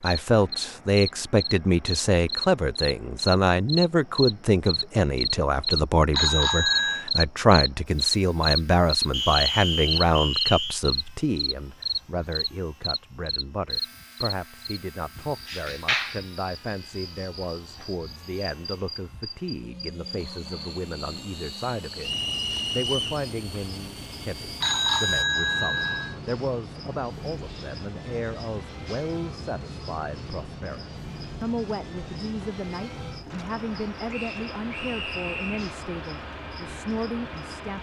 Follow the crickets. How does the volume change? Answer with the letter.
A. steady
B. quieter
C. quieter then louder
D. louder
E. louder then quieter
B.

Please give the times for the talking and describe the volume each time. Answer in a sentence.
You can hear the talking from 0.0 to 37.7 s, getting quieter.